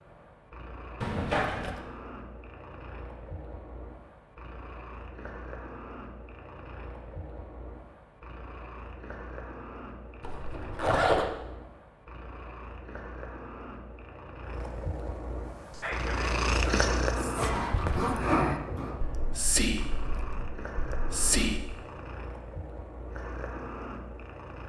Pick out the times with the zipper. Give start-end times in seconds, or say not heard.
1.0-1.8, 10.2-11.2, 17.4-18.9.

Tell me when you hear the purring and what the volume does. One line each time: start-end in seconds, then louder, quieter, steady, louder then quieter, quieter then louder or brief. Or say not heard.
0.0-24.6 louder then quieter.